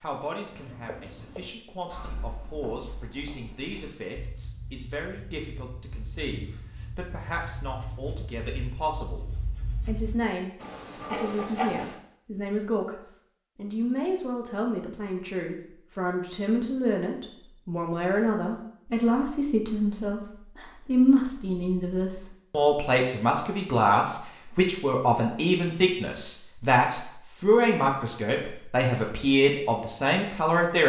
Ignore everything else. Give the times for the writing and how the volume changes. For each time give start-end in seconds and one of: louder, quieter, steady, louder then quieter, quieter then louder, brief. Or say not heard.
0.4-11.9 louder.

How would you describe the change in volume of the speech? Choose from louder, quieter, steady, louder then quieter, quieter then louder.
louder.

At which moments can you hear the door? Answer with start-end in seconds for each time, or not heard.
not heard.